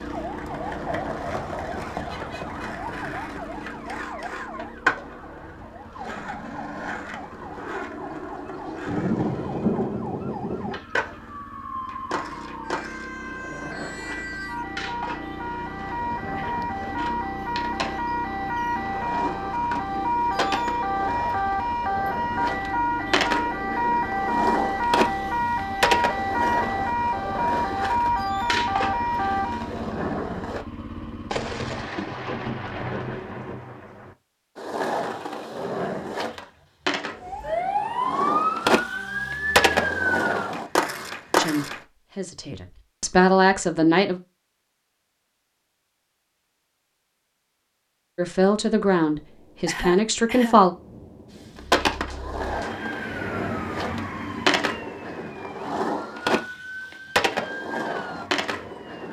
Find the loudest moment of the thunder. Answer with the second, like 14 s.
10 s.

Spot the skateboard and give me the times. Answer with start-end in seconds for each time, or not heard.
0.0-30.6, 34.5-41.8, 51.5-59.0.